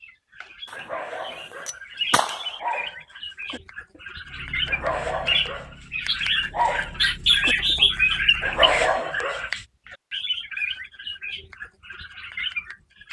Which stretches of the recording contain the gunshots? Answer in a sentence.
You can hear the gunshots from 0.7 to 2.5 s.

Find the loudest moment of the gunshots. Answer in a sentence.
The volume of the gunshots peaks at 2 seconds.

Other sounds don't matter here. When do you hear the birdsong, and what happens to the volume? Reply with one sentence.
You can hear the birdsong from 0.0 to 13.0 s, getting louder then quieter.